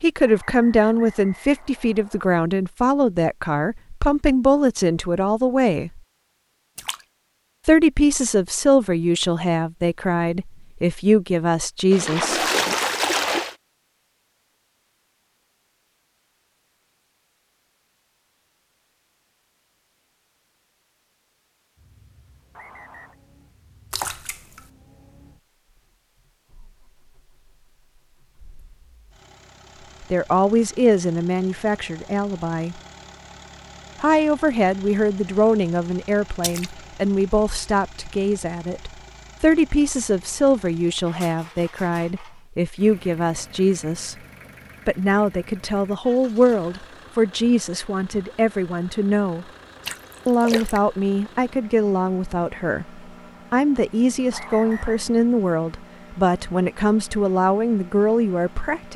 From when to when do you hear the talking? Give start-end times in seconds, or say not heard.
0.0-6.0, 7.7-12.4, 30.0-32.8, 34.0-44.1, 44.9-49.5, 50.2-58.9.